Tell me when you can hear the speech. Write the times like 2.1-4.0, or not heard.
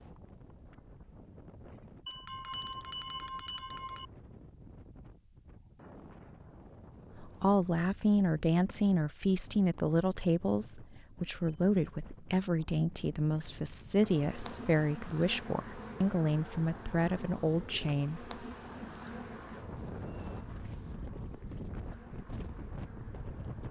7.2-18.3.